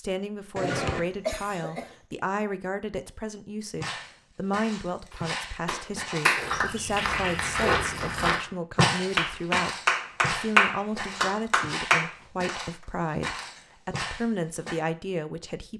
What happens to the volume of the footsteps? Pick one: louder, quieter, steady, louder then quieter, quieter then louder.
louder then quieter.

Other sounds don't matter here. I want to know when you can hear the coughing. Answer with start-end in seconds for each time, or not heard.
0.6-1.9.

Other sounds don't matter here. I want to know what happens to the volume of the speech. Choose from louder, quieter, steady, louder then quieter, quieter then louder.
steady.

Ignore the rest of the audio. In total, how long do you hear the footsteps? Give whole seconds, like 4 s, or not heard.
11 s.